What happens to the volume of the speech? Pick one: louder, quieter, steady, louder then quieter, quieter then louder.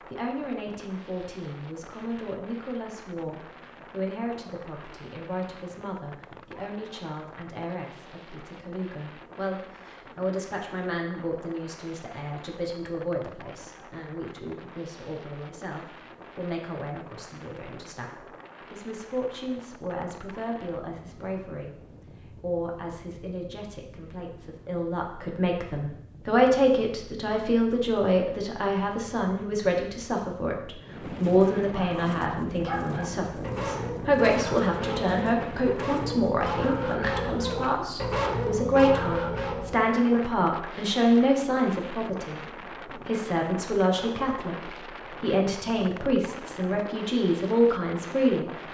louder.